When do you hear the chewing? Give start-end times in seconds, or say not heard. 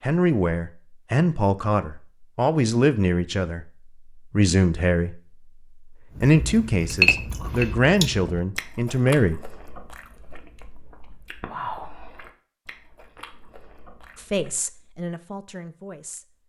6.2-14.6.